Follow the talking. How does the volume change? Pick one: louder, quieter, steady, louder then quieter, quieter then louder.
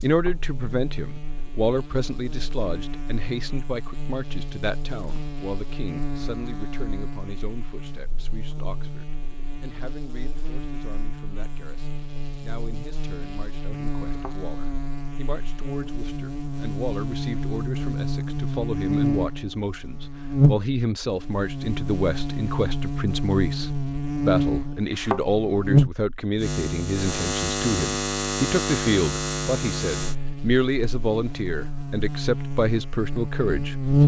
quieter then louder.